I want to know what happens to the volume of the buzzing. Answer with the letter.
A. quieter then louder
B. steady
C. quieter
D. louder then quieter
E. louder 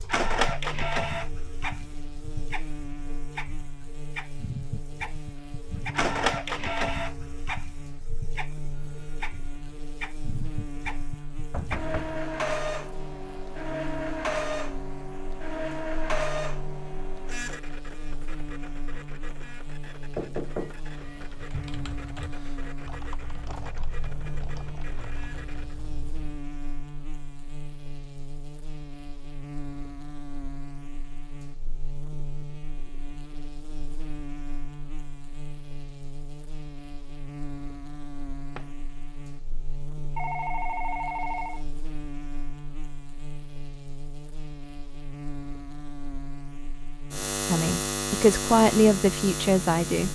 E.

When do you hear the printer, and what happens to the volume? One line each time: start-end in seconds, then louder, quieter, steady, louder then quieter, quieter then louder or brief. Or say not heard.
0.0-25.8 quieter.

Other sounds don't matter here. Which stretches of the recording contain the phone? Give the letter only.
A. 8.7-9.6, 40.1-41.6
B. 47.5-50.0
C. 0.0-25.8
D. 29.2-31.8
A.